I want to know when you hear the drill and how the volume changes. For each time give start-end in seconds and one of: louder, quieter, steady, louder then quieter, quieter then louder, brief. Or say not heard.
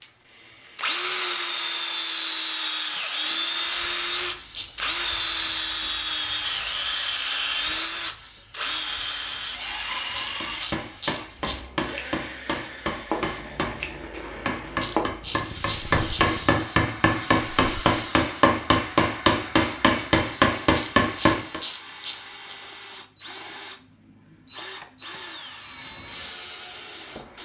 0.0-27.3 quieter.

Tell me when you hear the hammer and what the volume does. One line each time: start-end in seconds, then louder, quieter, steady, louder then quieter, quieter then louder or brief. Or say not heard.
10.4-21.6 louder.